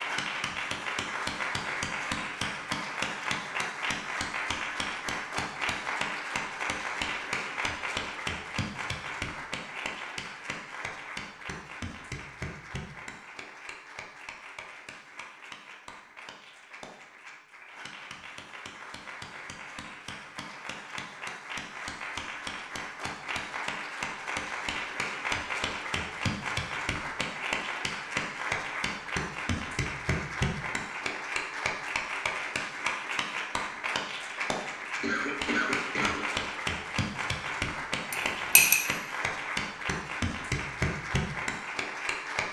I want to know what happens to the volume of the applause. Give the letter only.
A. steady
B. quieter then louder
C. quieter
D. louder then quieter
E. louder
B.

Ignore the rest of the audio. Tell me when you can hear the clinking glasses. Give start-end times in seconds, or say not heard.
38.1-38.8.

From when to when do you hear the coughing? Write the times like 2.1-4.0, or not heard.
35.0-36.2.